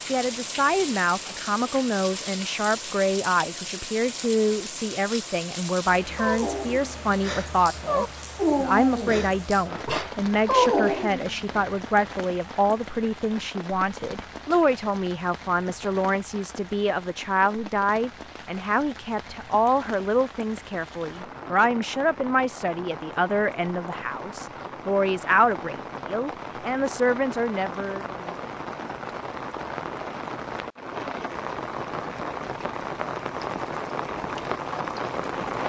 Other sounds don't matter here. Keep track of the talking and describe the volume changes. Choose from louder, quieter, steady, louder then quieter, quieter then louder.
steady.